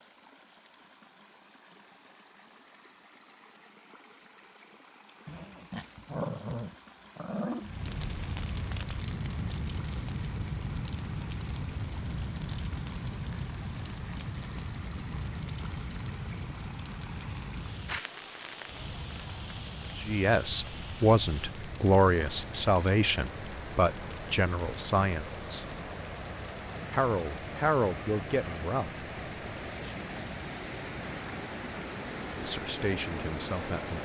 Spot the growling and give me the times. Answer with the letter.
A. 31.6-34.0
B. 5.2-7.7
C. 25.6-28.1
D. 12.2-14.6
B.